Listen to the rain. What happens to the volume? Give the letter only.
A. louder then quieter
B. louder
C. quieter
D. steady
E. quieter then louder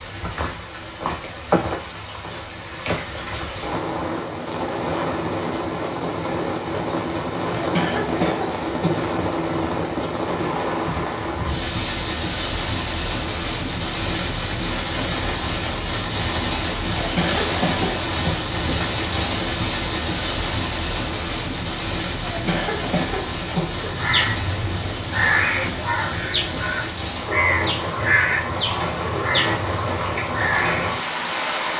D.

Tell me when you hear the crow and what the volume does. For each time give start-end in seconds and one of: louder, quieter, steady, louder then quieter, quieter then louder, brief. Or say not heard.
23.7-31.0 steady.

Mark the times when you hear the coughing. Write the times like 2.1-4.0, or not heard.
7.5-9.1, 16.9-18.4, 22.2-23.8.